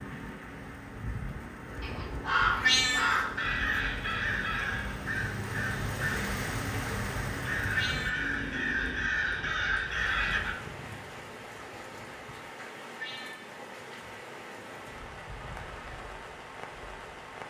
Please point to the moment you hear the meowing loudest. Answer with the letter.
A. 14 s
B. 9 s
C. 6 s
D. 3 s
D.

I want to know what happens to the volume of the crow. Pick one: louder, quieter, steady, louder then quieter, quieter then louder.
quieter then louder.